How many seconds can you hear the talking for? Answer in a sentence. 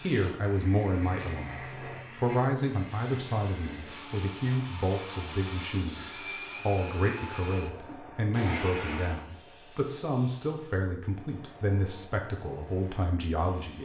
The talking can be heard for 14 seconds in total.